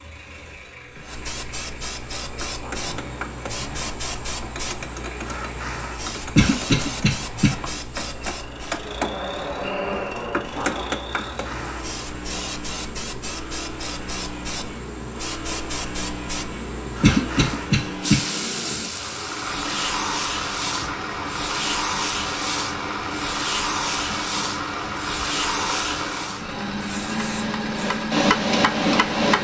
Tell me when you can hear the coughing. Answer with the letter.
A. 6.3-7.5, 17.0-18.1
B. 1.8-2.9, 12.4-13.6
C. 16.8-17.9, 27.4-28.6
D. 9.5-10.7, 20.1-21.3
A.